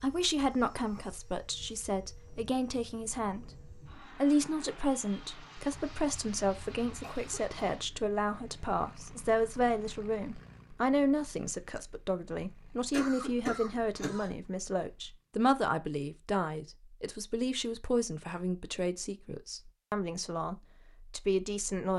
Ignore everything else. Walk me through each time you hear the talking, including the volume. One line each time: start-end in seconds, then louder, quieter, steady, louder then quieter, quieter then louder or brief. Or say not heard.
0.0-21.9 steady.